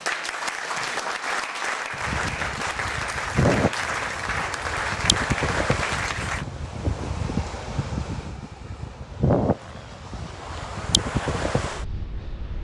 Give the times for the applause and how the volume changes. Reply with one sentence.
You can hear the applause from 0.0 to 6.5 s, at a steady volume.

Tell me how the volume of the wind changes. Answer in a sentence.
The loudness of the wind stays about the same.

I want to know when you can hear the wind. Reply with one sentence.
You can hear the wind from 1.9 to 12.5 s.